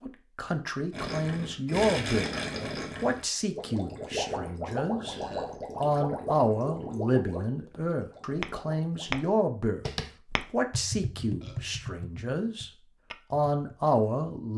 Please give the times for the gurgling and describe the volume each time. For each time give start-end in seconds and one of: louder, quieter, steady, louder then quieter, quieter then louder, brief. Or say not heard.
0.9-9.4 quieter.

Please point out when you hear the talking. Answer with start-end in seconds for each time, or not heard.
0.0-2.3, 3.0-9.8, 10.5-12.7, 13.3-14.5.